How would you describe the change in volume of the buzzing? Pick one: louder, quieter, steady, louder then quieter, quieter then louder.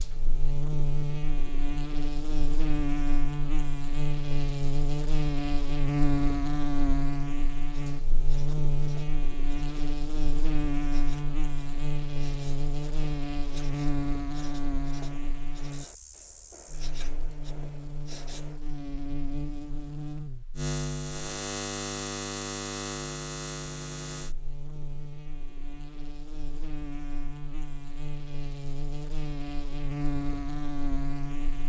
quieter.